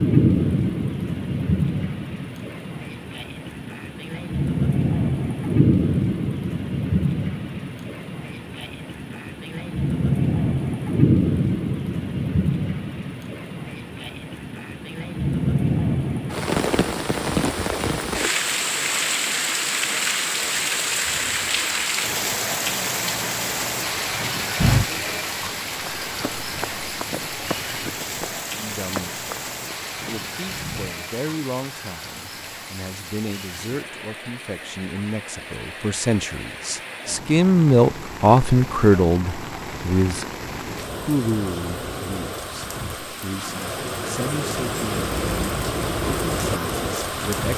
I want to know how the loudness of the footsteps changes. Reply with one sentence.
The volume of the footsteps goes up, then down.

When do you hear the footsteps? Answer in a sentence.
The footsteps can be heard from 24.6 to 31.0 s.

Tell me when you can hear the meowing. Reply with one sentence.
The meowing can't be heard in this clip.